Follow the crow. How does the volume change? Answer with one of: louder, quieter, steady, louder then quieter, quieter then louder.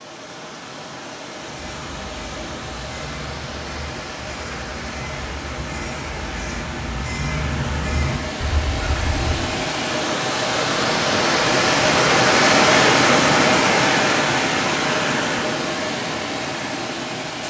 louder.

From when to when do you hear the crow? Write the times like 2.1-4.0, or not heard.
1.4-9.4.